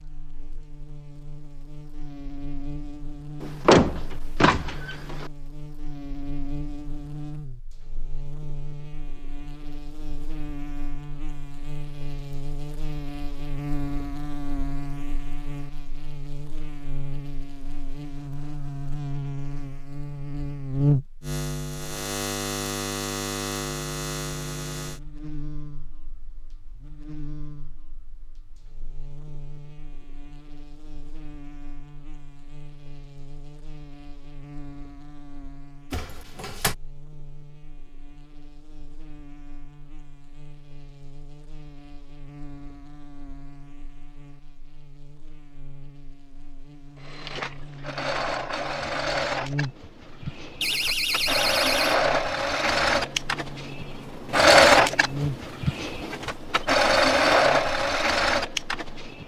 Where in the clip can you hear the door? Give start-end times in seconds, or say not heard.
3.4-5.3, 35.9-36.8, 50.6-52.0.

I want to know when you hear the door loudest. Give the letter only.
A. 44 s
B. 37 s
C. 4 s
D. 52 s
C.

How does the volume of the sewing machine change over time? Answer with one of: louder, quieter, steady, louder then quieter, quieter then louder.
louder.